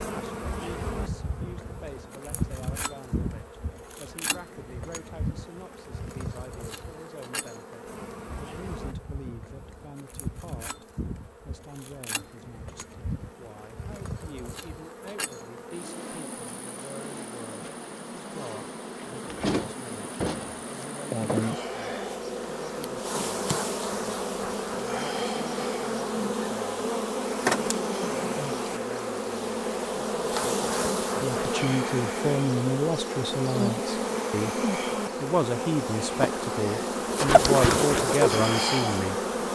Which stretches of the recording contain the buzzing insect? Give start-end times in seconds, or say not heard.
0.0-39.4.